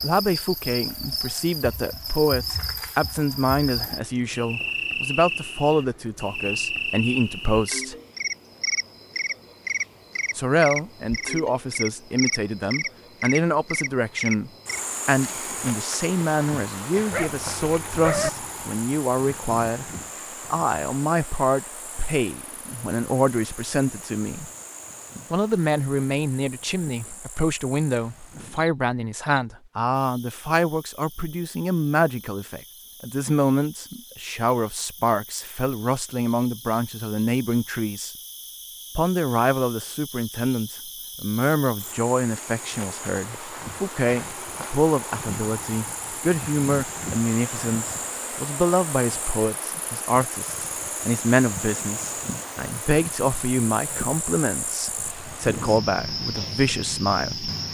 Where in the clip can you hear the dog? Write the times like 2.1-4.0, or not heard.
17.1-18.3.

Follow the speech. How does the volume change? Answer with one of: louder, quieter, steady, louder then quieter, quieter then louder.
steady.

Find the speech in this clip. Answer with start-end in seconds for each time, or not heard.
0.0-8.0, 10.3-19.9, 20.5-24.4, 25.3-38.1, 39.0-57.5.